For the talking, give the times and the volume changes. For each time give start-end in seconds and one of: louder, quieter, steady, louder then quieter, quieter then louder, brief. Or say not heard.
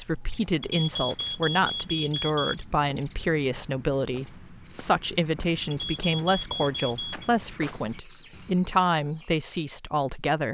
0.0-10.4 steady.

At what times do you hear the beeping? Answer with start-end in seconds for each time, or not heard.
0.6-2.6, 5.7-7.3.